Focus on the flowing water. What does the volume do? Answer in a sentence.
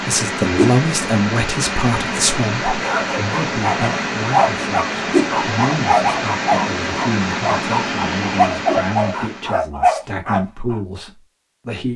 The volume of the flowing water stays about the same.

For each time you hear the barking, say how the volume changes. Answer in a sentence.
You can hear the barking from 2.6 to 10.8 s, at a steady volume.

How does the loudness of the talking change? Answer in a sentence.
The volume of the talking goes down.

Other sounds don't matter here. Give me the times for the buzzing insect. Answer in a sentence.
The buzzing insect can't be heard in this clip.